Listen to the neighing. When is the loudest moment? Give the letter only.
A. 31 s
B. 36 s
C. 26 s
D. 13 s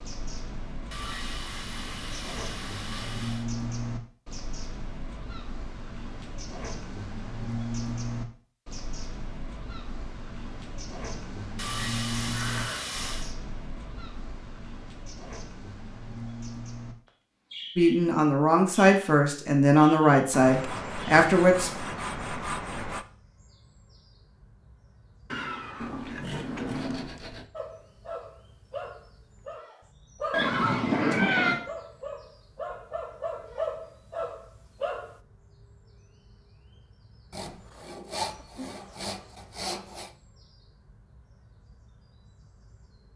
A.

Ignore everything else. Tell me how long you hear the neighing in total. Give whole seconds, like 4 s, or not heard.
4 s.